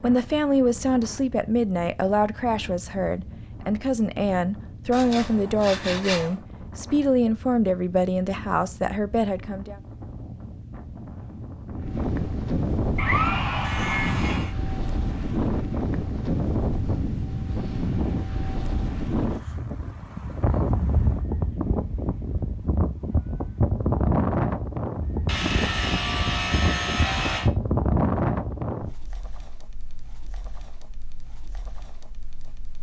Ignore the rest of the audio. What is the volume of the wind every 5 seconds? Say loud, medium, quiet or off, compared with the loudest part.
quiet, quiet, loud, loud, loud, loud, quiet.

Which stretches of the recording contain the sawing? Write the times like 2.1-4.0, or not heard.
4.9-6.3, 12.9-14.6, 25.2-27.5.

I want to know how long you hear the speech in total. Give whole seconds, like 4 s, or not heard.
10 s.